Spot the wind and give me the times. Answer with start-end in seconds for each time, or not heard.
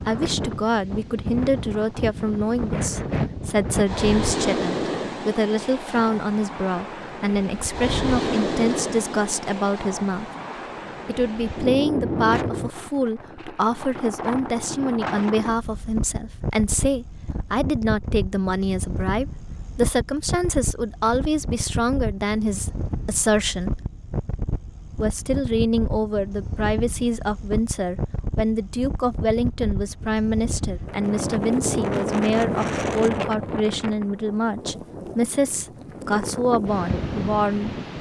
0.0-37.9.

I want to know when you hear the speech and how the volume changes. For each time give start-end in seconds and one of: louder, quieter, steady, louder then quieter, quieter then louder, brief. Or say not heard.
0.0-10.3 steady
11.1-23.8 steady
24.9-37.7 steady.